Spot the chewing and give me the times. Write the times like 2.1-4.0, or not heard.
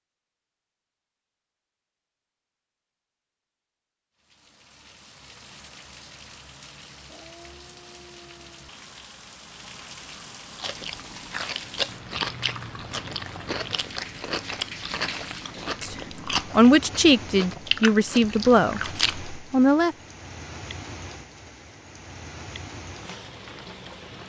10.6-19.2.